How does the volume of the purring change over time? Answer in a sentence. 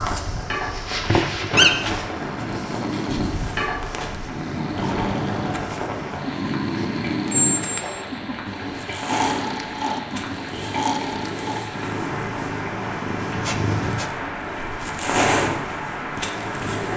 The loudness of the purring goes down, then up.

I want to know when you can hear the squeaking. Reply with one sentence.
The squeaking can be heard from 0.7 to 1.9 s, from 7.3 to 8.1 s and from 13.4 to 14.1 s.